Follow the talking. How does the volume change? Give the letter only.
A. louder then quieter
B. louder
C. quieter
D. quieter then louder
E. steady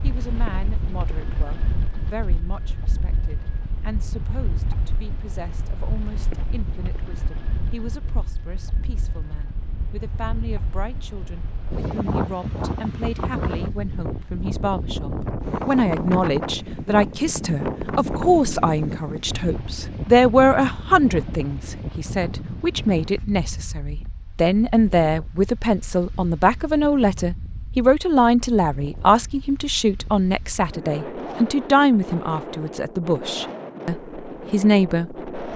B.